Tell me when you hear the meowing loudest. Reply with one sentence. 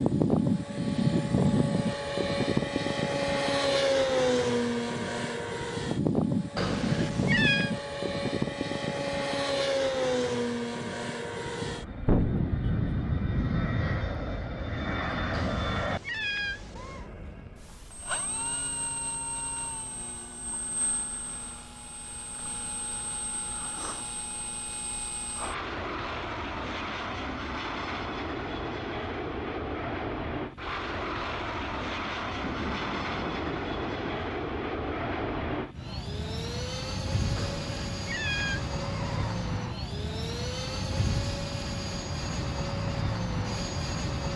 The volume of the meowing peaks at 7 seconds.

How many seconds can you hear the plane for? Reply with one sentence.
The plane can be heard for 44 seconds in total.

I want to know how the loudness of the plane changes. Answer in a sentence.
The loudness of the plane goes down, then up.